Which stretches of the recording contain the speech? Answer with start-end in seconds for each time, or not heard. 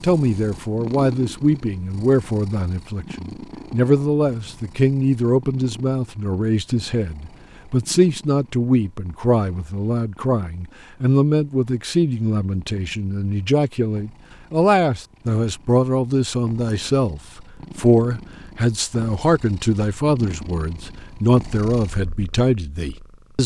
0.0-23.4.